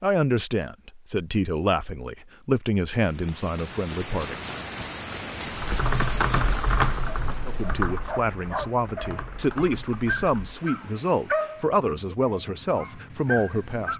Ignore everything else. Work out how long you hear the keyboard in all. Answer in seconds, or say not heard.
5 s.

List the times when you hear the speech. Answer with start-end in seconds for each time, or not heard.
0.0-4.4, 7.5-13.9.